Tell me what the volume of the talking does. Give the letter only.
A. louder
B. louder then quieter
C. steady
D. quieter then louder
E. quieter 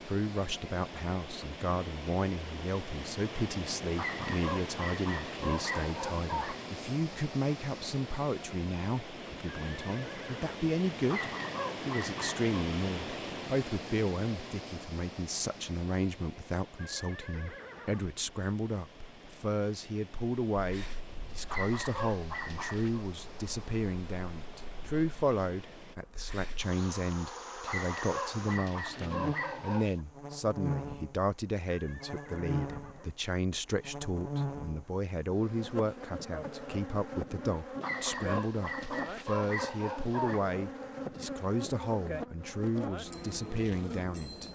C.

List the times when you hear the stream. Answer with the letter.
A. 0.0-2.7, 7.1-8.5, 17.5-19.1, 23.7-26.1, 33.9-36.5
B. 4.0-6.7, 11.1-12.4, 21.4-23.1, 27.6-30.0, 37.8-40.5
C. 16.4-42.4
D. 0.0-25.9
D.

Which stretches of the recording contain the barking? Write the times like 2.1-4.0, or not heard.
4.0-6.7, 11.1-12.4, 21.4-23.1, 27.6-30.0, 37.8-40.5.